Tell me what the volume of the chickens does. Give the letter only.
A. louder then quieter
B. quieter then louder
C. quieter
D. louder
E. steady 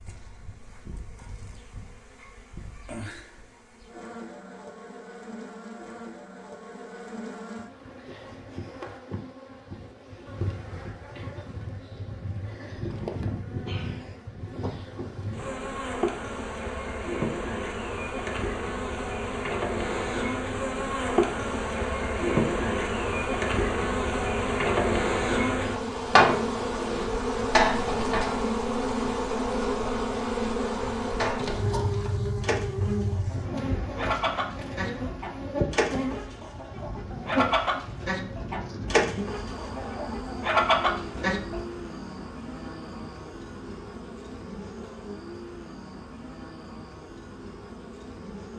D.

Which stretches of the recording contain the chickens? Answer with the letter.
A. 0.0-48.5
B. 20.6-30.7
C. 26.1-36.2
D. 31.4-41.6
D.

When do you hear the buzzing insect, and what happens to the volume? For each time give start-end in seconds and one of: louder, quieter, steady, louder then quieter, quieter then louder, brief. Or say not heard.
0.0-48.5 louder then quieter.